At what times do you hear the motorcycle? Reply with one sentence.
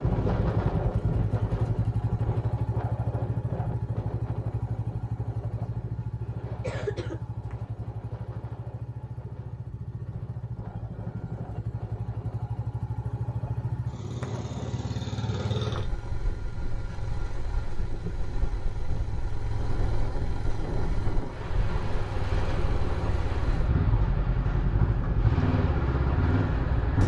The motorcycle can be heard from 0.0 to 27.0 s.